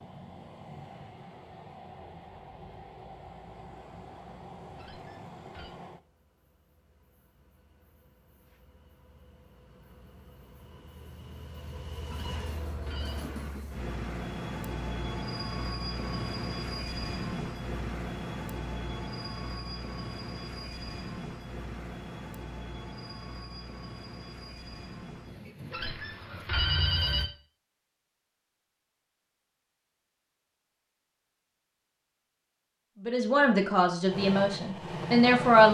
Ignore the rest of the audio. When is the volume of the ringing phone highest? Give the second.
27 s.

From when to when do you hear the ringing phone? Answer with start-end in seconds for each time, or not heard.
4.8-5.8, 12.1-13.2, 25.7-27.2.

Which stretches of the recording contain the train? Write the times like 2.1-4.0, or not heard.
0.0-27.3, 34.0-35.6.